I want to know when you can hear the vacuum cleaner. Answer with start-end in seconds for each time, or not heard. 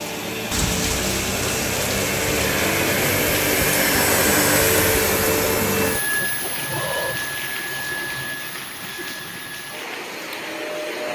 0.0-11.0.